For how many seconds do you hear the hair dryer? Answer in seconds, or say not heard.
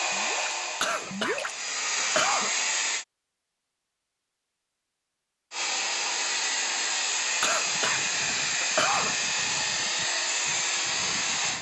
9 s.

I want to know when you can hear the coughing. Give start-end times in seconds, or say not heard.
0.8-2.5, 7.4-9.2.